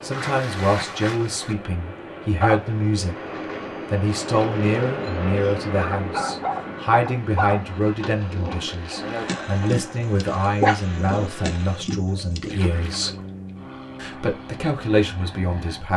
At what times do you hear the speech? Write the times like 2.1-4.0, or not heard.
0.0-3.1, 3.9-13.2, 14.0-15.9.